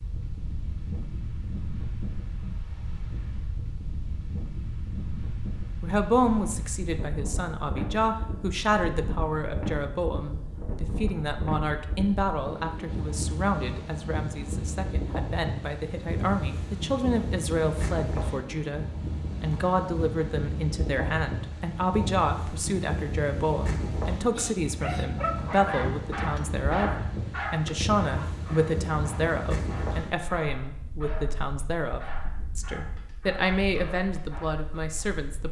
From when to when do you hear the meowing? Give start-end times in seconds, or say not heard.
not heard.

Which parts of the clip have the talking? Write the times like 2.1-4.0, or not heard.
5.8-26.9, 27.5-35.4.